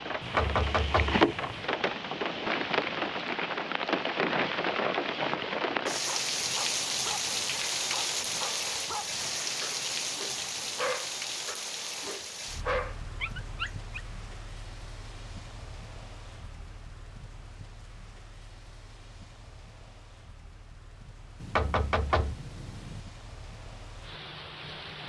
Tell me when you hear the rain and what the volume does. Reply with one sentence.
The rain can be heard from 0.0 to 25.0 s, getting quieter.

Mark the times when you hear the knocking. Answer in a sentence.
The knocking can be heard from 0.2 to 1.7 s and from 21.4 to 23.0 s.